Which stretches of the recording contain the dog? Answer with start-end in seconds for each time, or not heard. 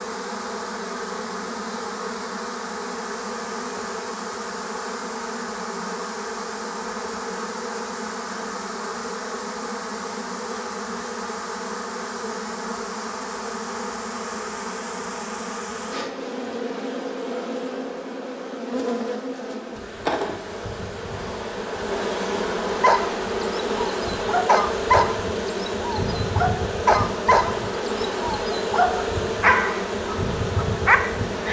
22.8-31.4.